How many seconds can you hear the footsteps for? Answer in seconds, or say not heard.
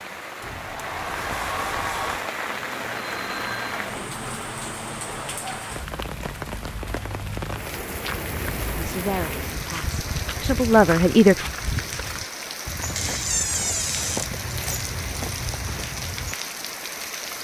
9 s.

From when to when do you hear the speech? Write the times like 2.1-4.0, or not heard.
8.8-11.4.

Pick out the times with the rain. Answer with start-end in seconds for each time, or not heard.
0.0-17.3.